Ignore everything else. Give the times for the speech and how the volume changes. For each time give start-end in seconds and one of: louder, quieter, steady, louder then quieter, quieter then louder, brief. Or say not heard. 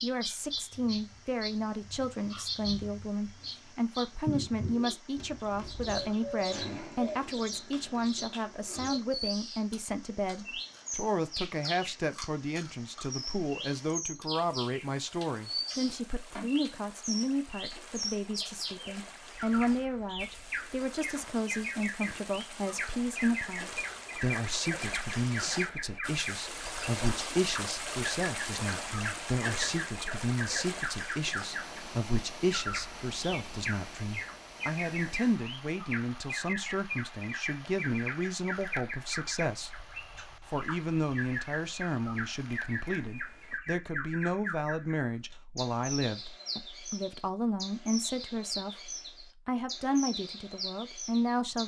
0.0-51.6 steady.